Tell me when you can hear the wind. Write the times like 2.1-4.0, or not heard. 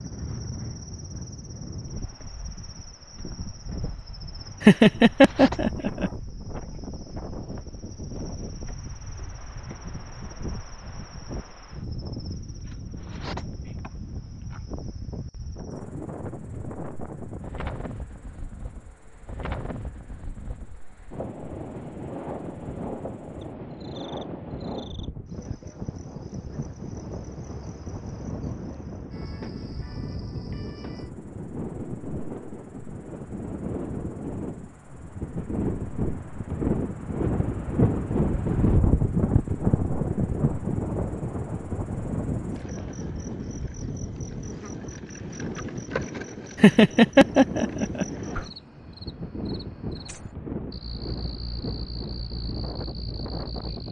0.0-53.8.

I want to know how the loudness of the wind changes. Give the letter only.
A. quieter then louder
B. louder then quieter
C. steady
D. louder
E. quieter
B.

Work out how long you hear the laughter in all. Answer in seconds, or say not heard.
3 s.